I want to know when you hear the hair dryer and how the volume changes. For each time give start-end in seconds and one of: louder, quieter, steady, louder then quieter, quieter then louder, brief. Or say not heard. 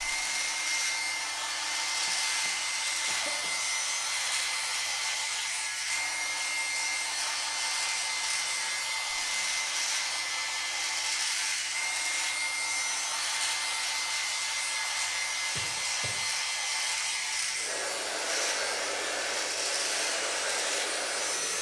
0.0-21.5 steady.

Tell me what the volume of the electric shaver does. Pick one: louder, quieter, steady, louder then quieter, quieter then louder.
steady.